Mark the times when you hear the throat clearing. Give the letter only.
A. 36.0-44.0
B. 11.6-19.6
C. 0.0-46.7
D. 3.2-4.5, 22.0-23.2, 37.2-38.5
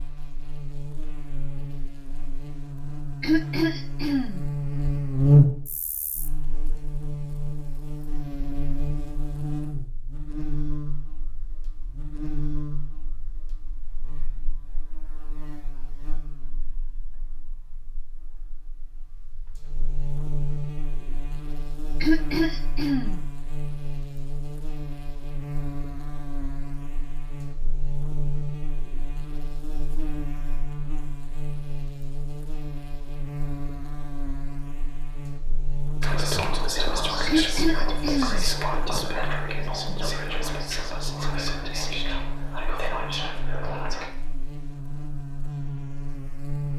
D.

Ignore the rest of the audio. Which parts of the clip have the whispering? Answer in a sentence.
You can hear the whispering from 36.0 to 44.0 s.